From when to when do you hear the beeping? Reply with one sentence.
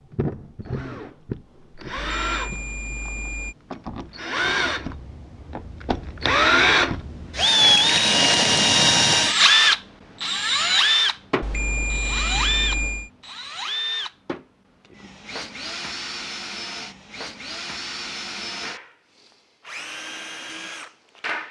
You can hear the beeping from 1.9 to 3.5 s and from 11.4 to 13.1 s.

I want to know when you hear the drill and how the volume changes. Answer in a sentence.
You can hear the drill from 0.0 to 21.4 s, getting louder then quieter.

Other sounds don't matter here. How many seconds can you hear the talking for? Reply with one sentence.
The talking can't be heard in this clip.